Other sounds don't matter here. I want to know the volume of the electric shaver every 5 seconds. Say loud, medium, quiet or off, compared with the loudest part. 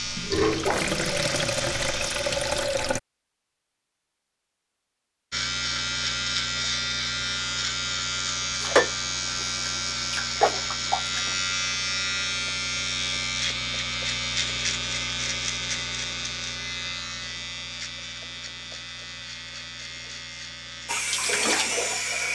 medium, loud, loud, medium, medium.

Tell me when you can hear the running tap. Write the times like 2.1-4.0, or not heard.
0.1-3.0, 8.6-11.3, 20.9-22.3.